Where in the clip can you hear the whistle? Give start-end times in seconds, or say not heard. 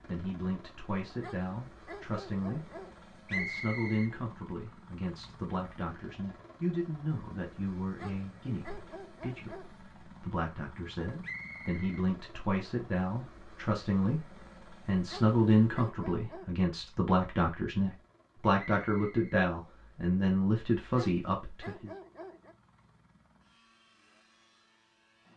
3.2-4.1, 11.2-12.1, 18.7-19.4.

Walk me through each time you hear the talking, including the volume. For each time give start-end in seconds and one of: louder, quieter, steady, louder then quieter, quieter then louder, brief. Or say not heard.
0.1-21.9 louder.